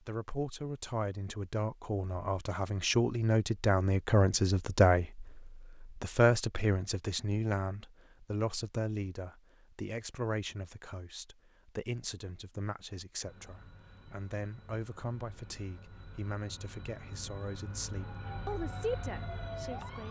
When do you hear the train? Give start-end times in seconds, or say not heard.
13.2-20.0.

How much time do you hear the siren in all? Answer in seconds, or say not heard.
2 s.